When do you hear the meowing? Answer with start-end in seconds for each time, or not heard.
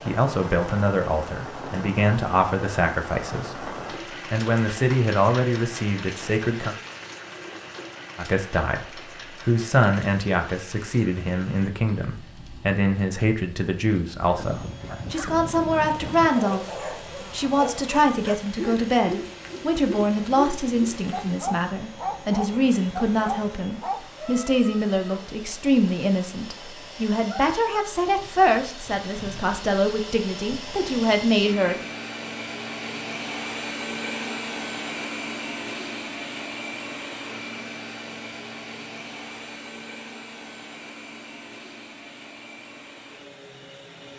not heard.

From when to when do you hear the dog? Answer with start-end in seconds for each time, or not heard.
14.3-24.1.